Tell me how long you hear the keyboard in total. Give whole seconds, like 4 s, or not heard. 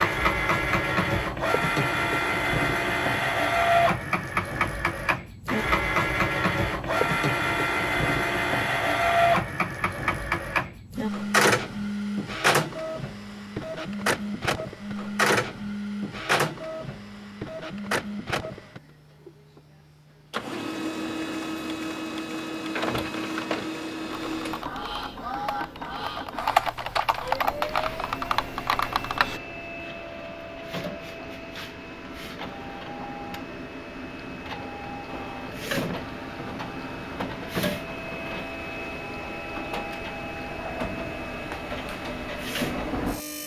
5 s.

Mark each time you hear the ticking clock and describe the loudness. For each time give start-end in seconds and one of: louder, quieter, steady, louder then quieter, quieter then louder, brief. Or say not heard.
not heard.